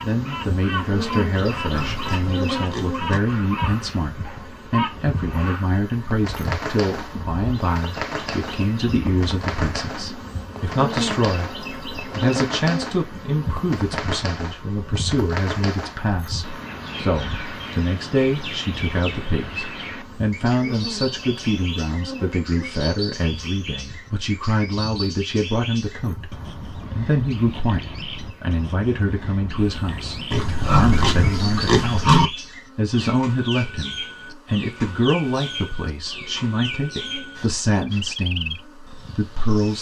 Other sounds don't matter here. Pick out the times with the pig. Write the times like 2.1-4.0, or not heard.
1.6-3.2, 30.3-32.3.